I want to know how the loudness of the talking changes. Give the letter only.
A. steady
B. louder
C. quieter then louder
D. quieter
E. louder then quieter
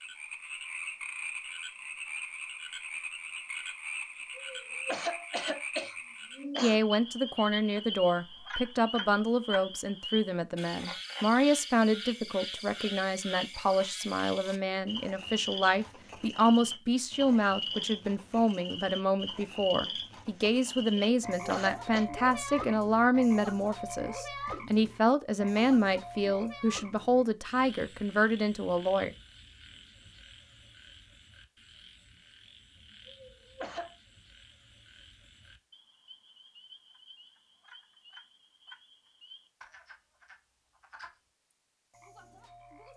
A.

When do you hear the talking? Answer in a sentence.
The talking can be heard from 6.6 to 29.1 s.